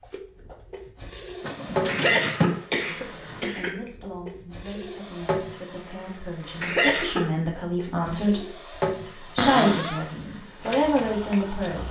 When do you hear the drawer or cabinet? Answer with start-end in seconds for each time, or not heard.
1.4-3.4, 9.3-10.1.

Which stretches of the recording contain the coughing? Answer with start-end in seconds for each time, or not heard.
1.9-3.8, 6.6-7.2.